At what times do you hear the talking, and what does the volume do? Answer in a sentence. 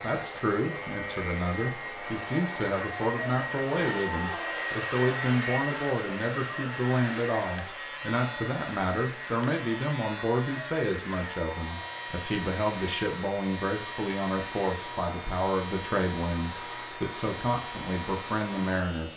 You can hear the talking from 0.0 to 19.1 s, at a steady volume.